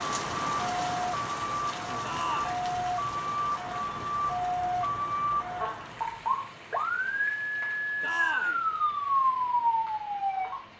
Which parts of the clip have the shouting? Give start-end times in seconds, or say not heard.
2.0-2.6, 8.0-8.7.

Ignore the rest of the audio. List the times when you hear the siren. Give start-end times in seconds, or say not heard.
0.0-10.7.